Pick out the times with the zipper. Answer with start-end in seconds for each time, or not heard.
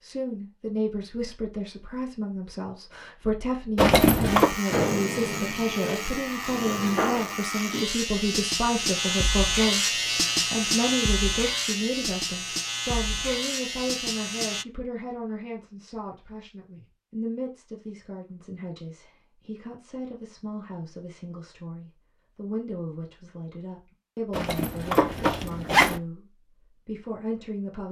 3.8-4.5, 24.3-26.0.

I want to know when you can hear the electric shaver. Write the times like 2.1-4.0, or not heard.
4.2-14.7.